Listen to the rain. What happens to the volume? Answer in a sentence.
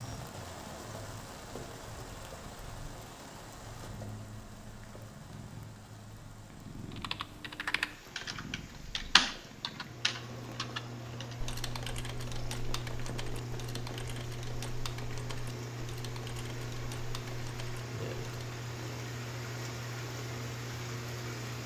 The loudness of the rain goes down, then up.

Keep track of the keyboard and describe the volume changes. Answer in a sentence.
The loudness of the keyboard goes down.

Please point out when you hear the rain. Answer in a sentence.
You can hear the rain from 0.0 to 21.6 s.